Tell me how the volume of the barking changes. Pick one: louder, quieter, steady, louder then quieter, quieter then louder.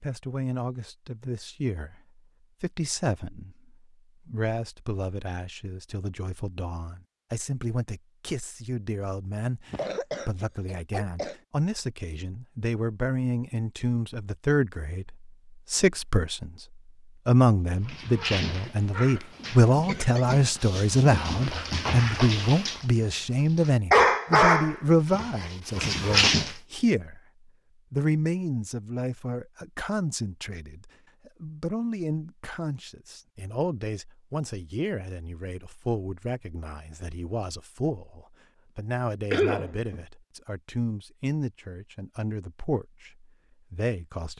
louder then quieter.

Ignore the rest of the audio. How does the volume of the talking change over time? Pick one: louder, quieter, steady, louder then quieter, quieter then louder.
louder then quieter.